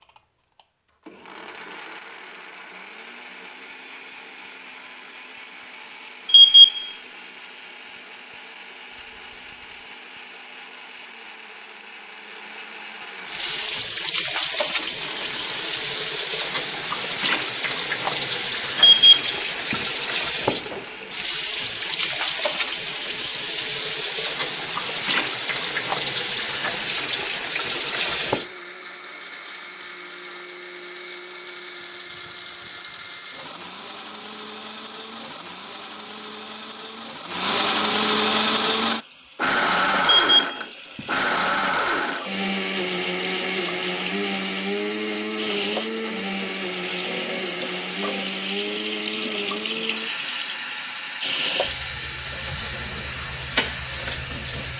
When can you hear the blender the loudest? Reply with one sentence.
The loudest moment of the blender is at 40 seconds.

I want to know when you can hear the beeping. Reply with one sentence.
You can hear the beeping from 6.2 to 6.8 s, from 18.8 to 19.8 s and from 40.1 to 41.0 s.